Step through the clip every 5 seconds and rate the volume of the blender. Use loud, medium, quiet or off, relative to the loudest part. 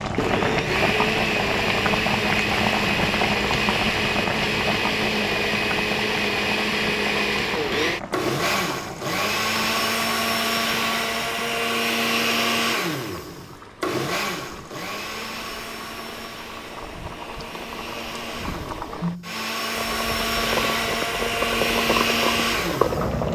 loud, loud, loud, medium, loud.